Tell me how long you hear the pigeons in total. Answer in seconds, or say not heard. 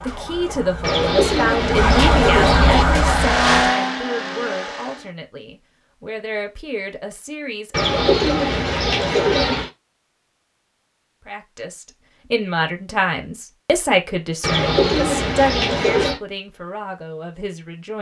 6 s.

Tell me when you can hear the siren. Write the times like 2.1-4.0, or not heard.
0.0-3.6.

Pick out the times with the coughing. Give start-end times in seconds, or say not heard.
not heard.